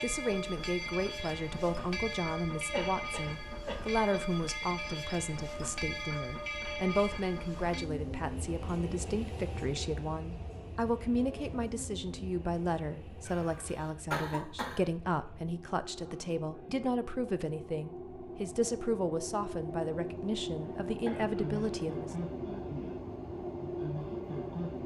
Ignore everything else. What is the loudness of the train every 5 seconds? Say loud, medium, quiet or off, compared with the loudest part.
loud, loud, medium, medium, loud.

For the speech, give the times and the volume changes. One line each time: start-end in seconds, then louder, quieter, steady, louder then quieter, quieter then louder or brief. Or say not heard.
0.0-22.1 steady.